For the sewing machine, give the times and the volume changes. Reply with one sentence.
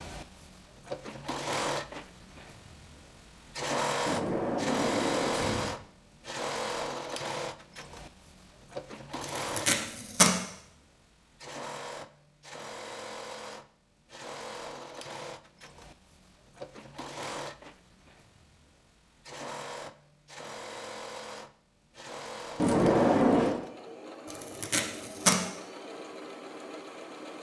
You can hear the sewing machine from 0.0 to 27.3 s, getting quieter.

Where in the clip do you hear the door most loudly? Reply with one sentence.
The volume of the door peaks at 23 seconds.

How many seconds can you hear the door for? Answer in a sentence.
You can hear the door for 3 seconds altogether.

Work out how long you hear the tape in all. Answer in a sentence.
The tape can be heard for 2 seconds in total.